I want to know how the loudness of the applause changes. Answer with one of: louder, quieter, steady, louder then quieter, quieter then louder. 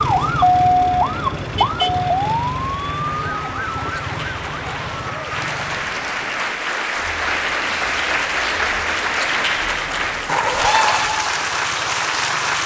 louder.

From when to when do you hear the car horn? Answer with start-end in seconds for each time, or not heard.
1.6-2.0, 10.2-11.1.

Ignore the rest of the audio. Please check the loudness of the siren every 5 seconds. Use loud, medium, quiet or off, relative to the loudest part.
loud, quiet, quiet.